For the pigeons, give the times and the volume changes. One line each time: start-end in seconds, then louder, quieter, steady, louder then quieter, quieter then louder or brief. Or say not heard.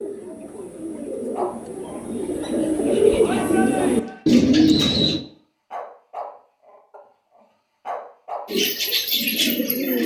0.0-5.2 louder
8.4-10.0 brief.